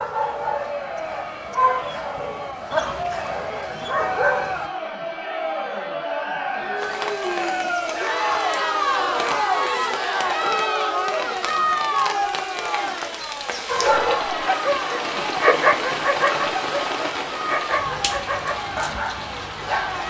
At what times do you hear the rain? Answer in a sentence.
You can hear the rain from 6.8 to 20.0 s.